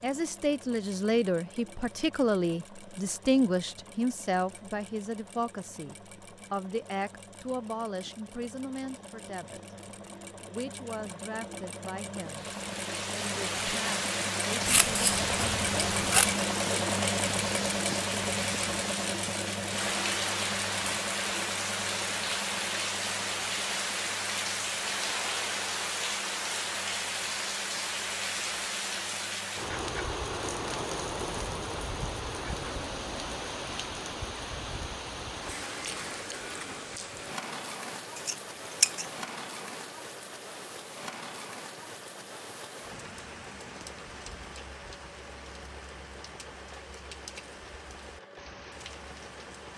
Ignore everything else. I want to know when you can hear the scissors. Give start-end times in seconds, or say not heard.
14.7-16.4, 38.1-39.1.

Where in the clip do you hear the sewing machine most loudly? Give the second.
17 s.